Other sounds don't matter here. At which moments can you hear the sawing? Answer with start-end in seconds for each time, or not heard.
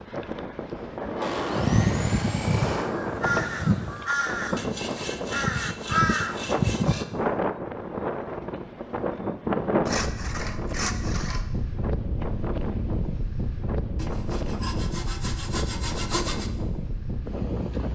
1.1-2.9, 4.5-7.0, 9.8-11.4, 13.9-16.5.